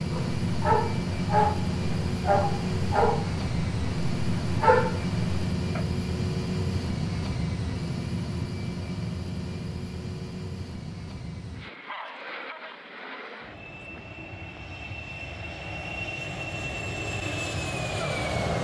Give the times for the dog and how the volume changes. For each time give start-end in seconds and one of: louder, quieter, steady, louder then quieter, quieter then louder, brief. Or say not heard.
0.1-5.8 quieter then louder.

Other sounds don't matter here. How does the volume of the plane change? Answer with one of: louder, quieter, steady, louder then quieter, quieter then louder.
quieter then louder.